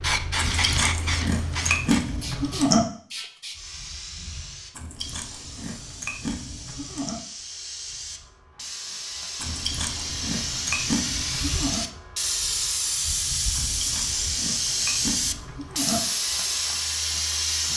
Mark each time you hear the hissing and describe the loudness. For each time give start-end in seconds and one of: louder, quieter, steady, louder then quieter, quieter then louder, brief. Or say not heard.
0.0-17.7 quieter then louder.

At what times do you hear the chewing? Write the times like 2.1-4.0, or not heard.
0.3-2.9, 4.7-7.2, 9.4-11.8, 13.5-16.0.